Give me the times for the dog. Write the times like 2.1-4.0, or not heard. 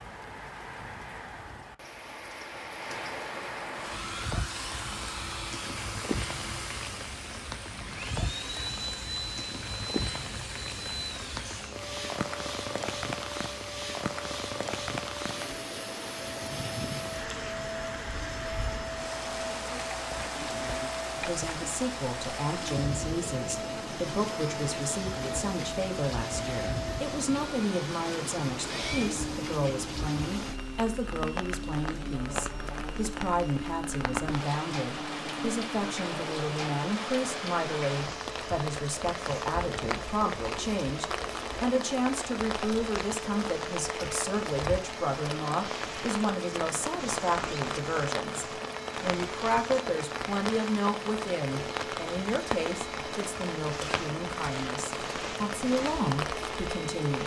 not heard.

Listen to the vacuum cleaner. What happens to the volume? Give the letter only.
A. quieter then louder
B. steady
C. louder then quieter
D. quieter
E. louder
B.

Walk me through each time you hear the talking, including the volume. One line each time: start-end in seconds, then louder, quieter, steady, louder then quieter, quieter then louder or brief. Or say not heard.
21.1-57.2 steady.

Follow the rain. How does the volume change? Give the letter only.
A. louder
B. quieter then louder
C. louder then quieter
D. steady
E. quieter
D.